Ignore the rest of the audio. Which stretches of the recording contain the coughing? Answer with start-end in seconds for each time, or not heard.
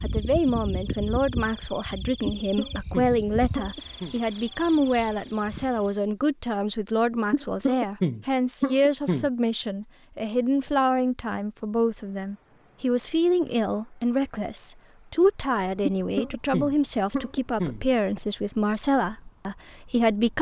2.2-4.2, 7.3-9.3, 15.8-17.9.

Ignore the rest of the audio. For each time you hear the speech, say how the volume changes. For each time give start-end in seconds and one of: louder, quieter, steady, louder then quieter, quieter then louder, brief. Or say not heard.
0.0-20.3 steady.